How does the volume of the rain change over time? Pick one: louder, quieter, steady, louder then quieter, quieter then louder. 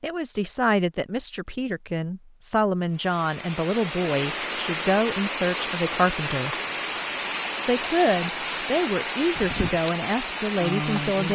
steady.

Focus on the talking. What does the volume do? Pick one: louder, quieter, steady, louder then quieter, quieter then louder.
steady.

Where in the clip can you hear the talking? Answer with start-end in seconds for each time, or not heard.
0.0-6.5, 7.7-11.2.